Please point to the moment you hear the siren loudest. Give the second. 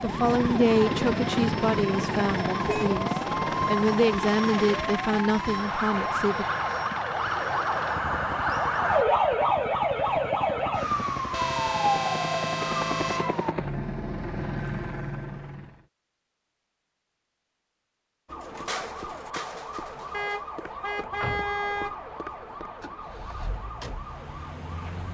9 s.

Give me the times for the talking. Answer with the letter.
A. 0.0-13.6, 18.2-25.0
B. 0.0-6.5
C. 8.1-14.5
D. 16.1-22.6
B.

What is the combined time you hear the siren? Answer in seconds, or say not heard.
20 s.